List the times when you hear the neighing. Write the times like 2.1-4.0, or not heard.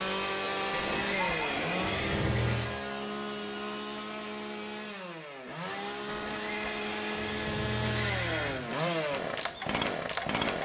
0.7-2.7, 6.0-8.6.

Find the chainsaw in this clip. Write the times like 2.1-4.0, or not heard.
0.0-10.5.